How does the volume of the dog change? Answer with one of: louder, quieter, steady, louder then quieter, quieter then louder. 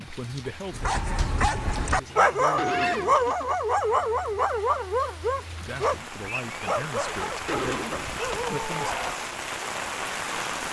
quieter.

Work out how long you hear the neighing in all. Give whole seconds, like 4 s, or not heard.
2 s.